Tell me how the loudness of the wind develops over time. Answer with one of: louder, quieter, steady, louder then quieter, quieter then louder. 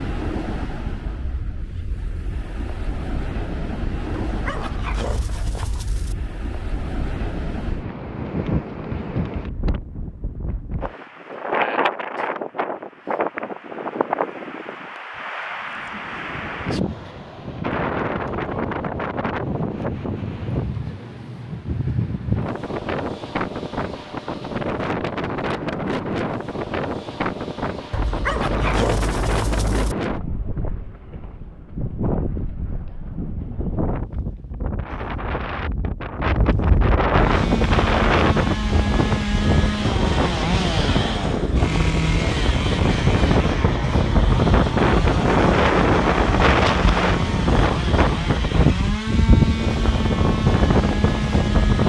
louder.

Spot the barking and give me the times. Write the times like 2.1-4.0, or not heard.
4.2-6.2, 27.9-29.9.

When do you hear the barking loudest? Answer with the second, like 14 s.
29 s.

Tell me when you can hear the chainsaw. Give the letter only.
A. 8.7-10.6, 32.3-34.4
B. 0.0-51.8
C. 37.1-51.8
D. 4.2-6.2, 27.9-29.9
C.